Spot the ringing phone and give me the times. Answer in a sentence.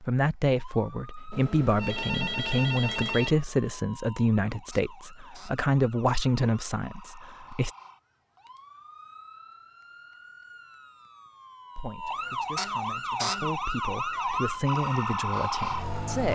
The ringing phone can be heard from 1.3 to 3.4 s.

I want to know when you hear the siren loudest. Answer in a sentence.
The volume of the siren peaks at 15 seconds.